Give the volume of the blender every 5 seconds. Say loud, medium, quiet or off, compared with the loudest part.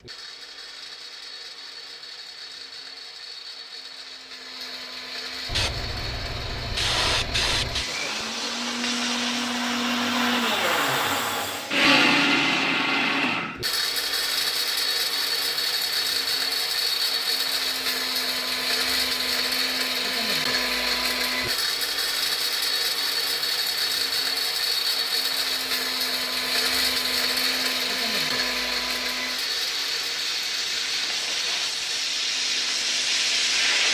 quiet, medium, loud, loud, loud, loud, medium.